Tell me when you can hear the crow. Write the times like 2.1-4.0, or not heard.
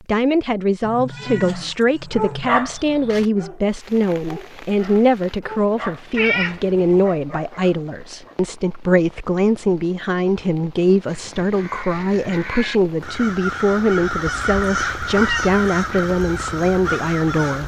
11.1-17.6.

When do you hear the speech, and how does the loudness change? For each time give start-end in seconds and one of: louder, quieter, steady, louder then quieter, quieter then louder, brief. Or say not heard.
0.1-17.6 steady.